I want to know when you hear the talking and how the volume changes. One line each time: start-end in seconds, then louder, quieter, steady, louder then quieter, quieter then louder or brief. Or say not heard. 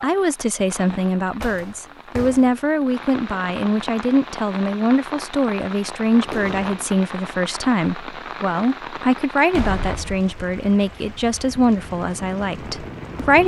0.0-13.4 steady.